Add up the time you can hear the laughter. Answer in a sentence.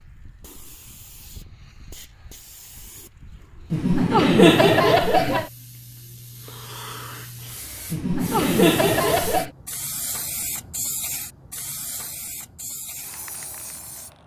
The laughter can be heard for 3 seconds in total.